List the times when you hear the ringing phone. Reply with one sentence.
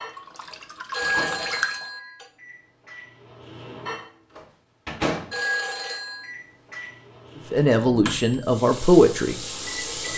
The ringing phone can be heard from 0.9 to 2.2 s and from 5.3 to 6.3 s.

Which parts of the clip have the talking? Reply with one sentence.
You can hear the talking from 7.5 to 9.3 s.